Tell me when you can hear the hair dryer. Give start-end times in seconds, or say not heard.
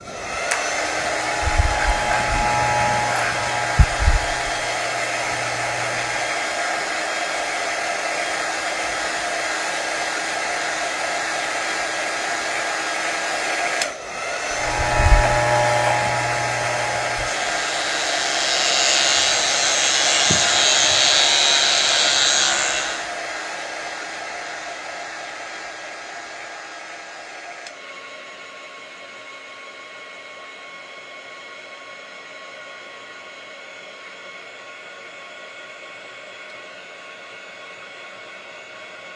0.0-39.1.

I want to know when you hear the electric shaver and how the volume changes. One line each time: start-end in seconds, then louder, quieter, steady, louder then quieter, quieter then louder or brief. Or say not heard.
0.0-6.5 louder then quieter
14.5-23.1 quieter then louder.